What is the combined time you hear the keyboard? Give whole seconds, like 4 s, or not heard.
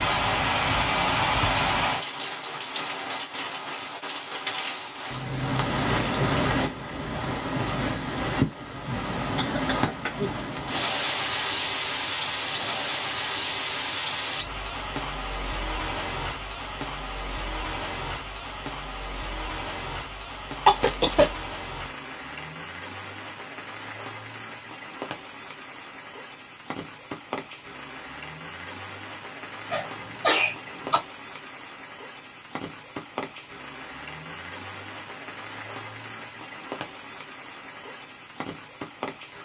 not heard.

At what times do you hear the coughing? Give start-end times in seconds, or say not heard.
9.2-10.3, 20.6-21.3, 29.7-31.0.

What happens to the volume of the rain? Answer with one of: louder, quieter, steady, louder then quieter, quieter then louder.
quieter.